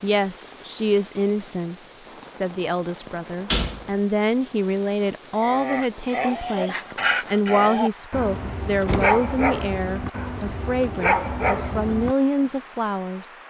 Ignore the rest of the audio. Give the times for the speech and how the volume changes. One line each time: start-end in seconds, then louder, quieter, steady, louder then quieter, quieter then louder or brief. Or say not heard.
0.0-13.3 steady.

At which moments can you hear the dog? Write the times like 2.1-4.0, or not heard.
5.3-12.4.